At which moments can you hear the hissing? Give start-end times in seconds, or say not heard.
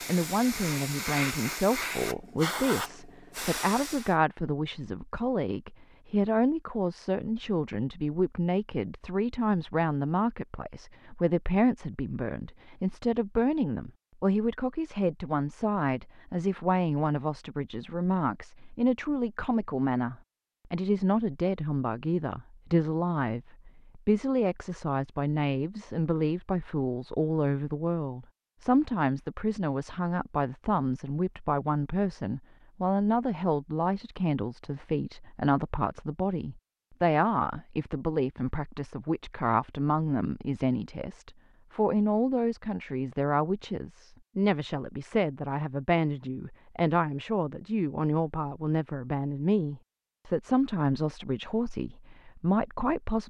0.0-4.2.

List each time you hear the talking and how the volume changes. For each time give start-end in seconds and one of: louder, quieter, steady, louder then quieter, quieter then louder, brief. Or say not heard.
0.1-53.2 steady.